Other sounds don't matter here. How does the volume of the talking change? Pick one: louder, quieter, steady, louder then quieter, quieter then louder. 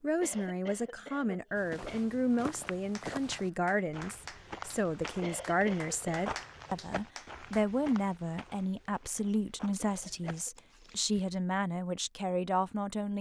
steady.